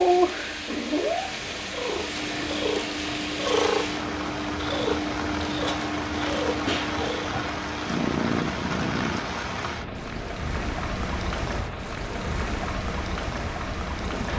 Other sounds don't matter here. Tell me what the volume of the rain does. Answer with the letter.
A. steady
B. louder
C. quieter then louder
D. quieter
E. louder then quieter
A.